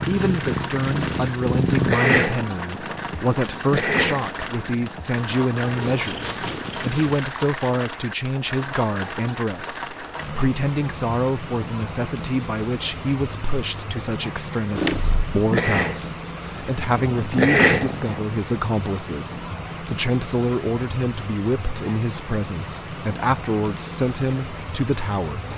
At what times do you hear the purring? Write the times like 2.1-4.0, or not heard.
0.0-7.2, 14.8-18.2.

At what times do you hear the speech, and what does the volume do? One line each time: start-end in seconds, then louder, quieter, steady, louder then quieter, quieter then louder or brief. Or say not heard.
0.1-25.5 steady.